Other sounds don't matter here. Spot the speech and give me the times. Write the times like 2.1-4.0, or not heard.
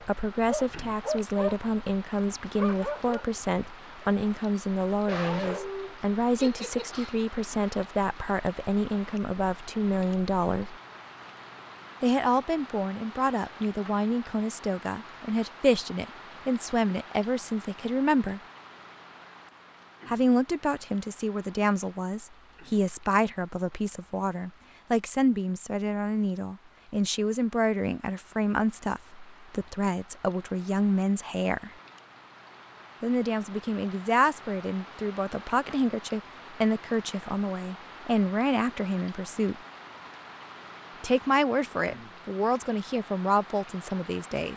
0.1-10.8, 12.0-18.4, 20.1-31.7, 33.0-39.5, 41.0-44.5.